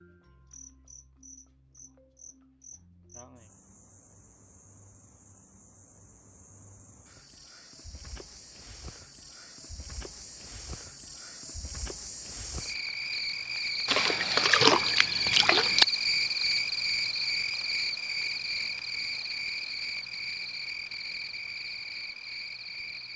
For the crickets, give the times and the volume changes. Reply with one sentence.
The crickets can be heard from 0.0 to 23.1 s, getting louder then quieter.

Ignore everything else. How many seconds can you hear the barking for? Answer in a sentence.
You can't hear the barking here.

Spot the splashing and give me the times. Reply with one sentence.
The splashing can be heard from 13.8 to 15.8 s.